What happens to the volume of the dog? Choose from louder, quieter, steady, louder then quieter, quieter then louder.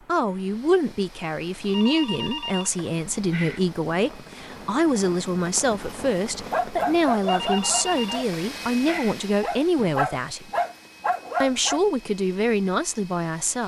quieter then louder.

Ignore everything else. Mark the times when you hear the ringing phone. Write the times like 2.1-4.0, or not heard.
1.6-3.6, 7.2-9.2.